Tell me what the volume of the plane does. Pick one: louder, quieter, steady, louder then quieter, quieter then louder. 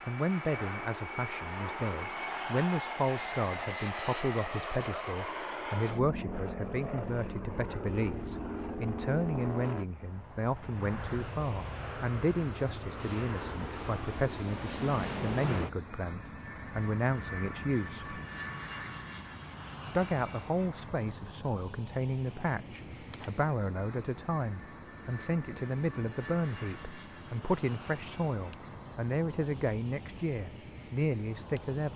quieter.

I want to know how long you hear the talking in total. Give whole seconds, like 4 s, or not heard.
30 s.